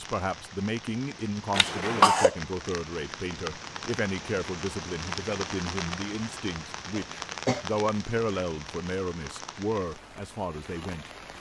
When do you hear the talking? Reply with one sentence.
The talking can be heard from 0.0 to 11.3 s.